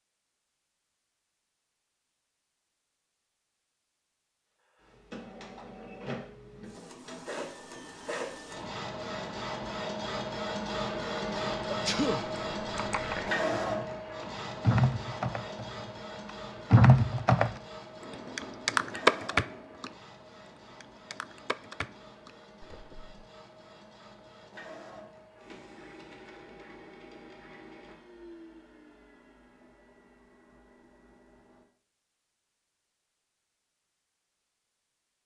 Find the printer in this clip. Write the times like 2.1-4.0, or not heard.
4.8-31.6.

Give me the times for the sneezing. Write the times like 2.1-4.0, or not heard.
11.7-12.2.